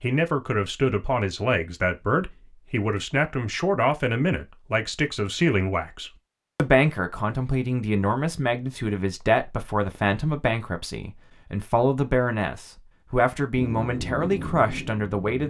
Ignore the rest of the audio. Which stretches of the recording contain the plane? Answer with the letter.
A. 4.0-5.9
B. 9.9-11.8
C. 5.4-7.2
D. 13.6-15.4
D.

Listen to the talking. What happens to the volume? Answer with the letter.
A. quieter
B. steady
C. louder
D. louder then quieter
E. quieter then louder
B.